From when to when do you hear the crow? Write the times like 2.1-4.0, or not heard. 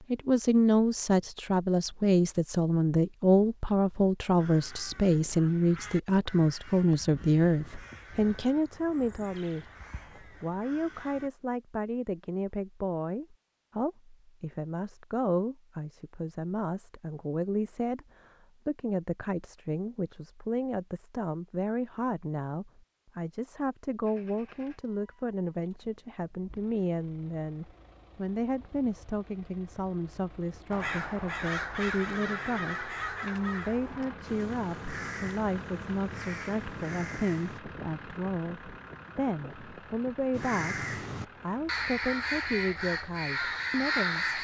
4.3-11.3, 30.7-37.6, 40.3-44.3.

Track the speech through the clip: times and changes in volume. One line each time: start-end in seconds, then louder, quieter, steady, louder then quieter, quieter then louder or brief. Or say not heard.
0.1-44.3 quieter.